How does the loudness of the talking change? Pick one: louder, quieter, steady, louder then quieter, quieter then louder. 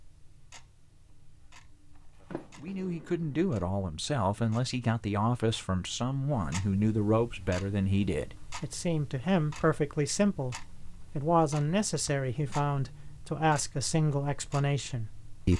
steady.